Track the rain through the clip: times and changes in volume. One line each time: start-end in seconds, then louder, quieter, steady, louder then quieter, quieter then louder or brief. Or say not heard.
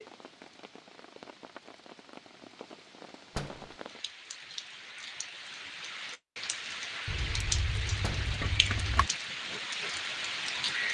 0.0-10.8 louder.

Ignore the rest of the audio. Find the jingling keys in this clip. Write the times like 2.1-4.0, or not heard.
7.0-9.1.